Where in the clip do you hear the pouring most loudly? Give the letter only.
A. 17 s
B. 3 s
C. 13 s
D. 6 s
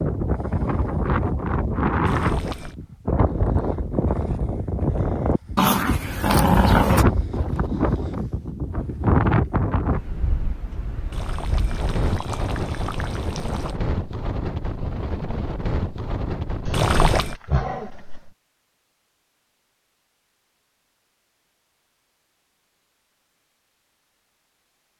A.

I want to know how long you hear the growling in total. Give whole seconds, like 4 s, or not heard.
3 s.